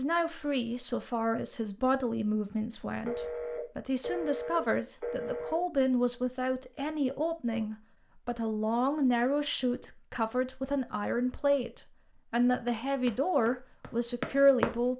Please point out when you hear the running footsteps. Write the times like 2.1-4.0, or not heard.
12.7-14.9.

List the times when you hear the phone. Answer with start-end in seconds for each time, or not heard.
3.0-5.6.